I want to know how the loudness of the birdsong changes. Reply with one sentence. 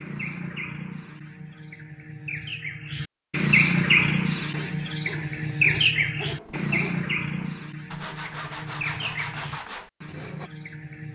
The volume of the birdsong goes up, then down.